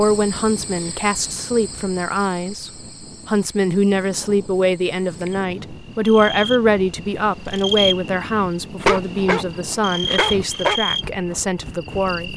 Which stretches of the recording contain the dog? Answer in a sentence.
You can hear the dog from 8.8 to 10.8 s.